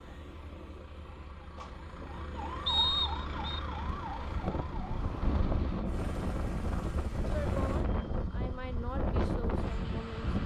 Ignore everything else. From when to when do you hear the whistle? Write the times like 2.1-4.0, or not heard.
2.6-3.6.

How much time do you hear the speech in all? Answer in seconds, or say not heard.
3 s.